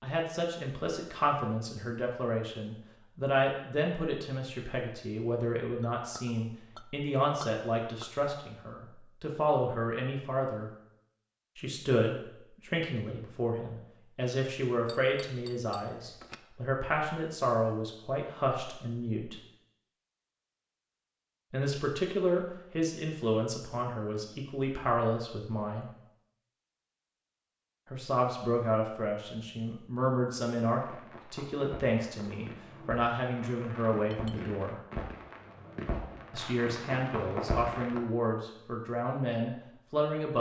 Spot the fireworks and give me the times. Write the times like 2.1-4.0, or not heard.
30.6-38.0.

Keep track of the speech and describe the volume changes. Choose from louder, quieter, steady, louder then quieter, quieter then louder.
steady.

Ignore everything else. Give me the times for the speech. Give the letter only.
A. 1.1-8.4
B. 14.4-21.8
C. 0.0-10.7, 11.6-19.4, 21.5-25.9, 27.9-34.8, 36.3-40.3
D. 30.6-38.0
C.